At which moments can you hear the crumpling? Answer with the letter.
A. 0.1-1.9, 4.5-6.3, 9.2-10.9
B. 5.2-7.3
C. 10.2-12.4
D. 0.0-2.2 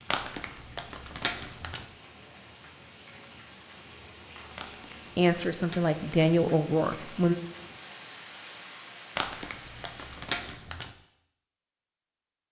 A.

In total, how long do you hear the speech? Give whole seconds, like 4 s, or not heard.
2 s.